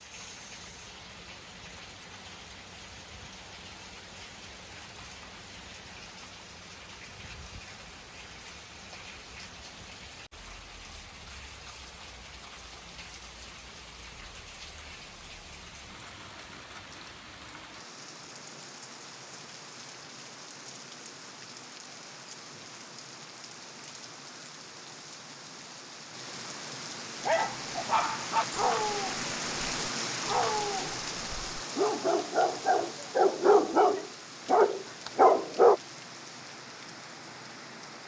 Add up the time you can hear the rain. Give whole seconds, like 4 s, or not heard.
38 s.